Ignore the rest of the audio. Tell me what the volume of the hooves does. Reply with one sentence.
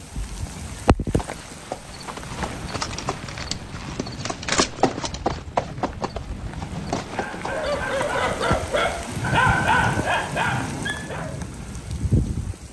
The loudness of the hooves goes up, then down.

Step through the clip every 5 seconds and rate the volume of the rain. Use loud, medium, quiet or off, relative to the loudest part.
medium, loud, loud.